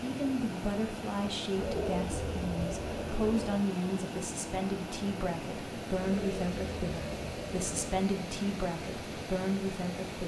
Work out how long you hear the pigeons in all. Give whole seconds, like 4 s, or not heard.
4 s.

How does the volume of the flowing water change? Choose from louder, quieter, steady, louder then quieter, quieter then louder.
steady.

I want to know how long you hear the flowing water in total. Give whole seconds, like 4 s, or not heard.
10 s.